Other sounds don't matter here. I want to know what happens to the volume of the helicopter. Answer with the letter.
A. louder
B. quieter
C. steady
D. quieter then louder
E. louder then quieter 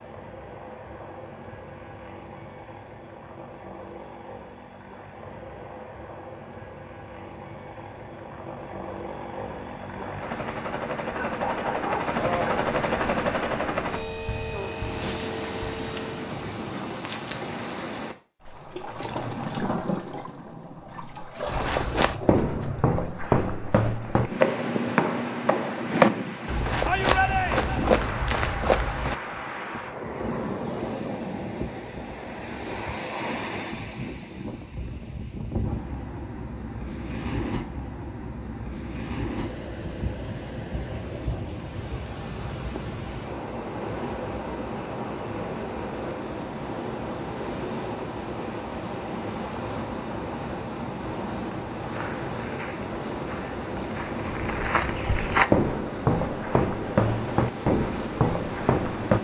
A.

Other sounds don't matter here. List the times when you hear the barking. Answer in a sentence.
You can hear the barking from 11.2 to 12.7 s.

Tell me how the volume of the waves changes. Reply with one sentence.
The volume of the waves stays about the same.